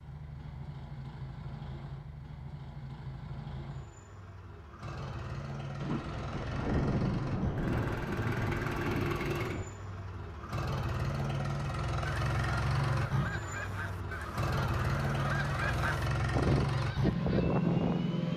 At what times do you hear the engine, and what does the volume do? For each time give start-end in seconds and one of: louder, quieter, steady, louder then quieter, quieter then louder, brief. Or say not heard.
0.0-18.3 louder.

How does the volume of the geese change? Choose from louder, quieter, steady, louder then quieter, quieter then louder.
louder.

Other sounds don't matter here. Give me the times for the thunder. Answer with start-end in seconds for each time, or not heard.
5.8-9.7.